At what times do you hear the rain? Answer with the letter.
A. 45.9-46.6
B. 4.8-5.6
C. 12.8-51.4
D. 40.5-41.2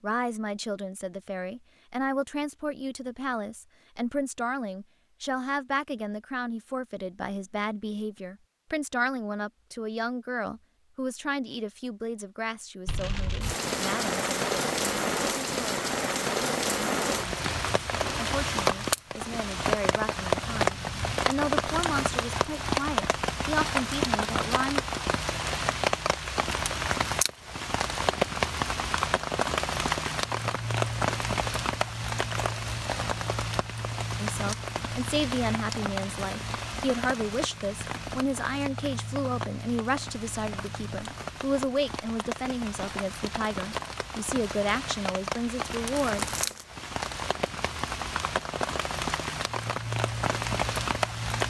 C.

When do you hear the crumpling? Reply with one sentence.
The crumpling can be heard from 45.9 to 46.6 s.